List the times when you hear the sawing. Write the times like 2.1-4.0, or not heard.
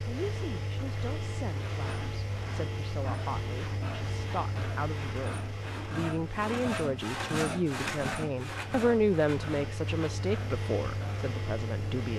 1.5-11.4.